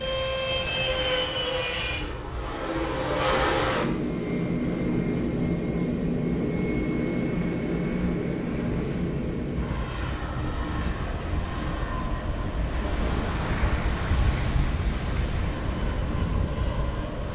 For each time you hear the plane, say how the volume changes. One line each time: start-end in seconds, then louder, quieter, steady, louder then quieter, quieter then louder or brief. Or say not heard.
0.0-17.3 quieter.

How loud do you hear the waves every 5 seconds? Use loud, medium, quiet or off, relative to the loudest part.
medium, medium, loud, loud.